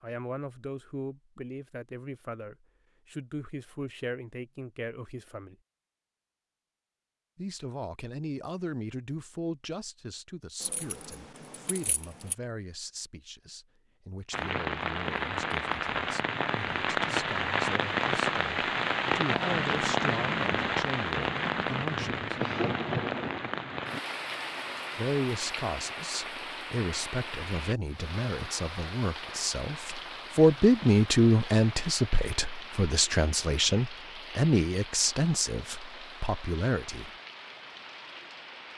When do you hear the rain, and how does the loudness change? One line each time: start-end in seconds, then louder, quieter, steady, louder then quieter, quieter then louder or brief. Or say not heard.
14.3-38.7 quieter.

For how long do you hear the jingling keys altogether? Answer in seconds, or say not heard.
2 s.